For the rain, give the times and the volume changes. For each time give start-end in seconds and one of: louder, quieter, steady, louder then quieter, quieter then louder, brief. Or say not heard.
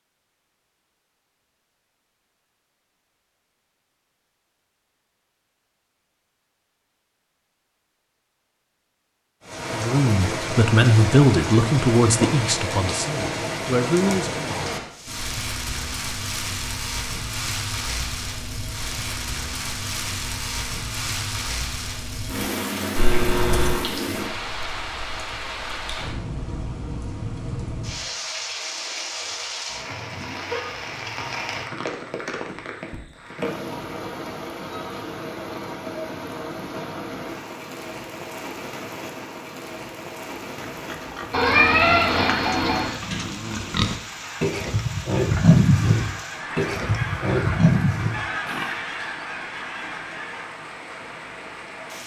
9.4-52.0 quieter.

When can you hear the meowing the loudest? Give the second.
42 s.